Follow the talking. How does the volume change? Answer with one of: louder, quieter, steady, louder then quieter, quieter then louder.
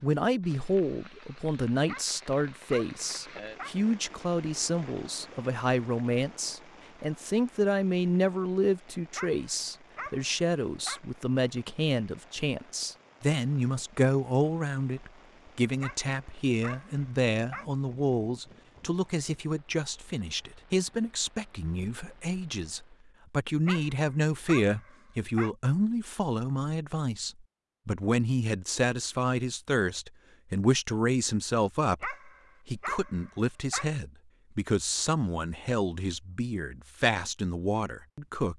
steady.